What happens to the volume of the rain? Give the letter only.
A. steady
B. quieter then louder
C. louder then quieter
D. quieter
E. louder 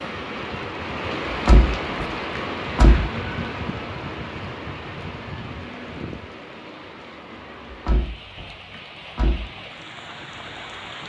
D.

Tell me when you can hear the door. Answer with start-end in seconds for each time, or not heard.
1.3-3.0, 7.7-9.4.